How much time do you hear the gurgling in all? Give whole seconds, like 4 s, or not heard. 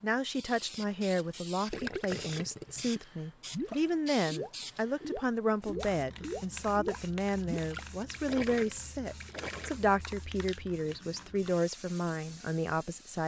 8 s.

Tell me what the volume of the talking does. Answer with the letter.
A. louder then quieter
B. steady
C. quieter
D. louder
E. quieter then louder
B.